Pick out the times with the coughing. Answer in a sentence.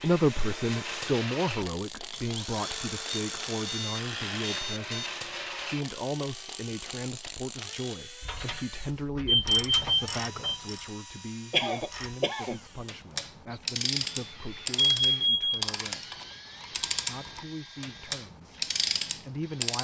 You can hear the coughing from 11.5 to 12.6 s.